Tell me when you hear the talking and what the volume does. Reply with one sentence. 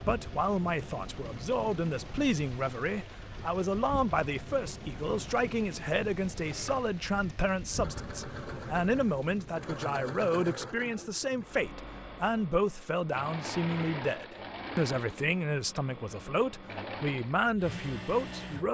The talking can be heard from 0.0 to 18.6 s, at a steady volume.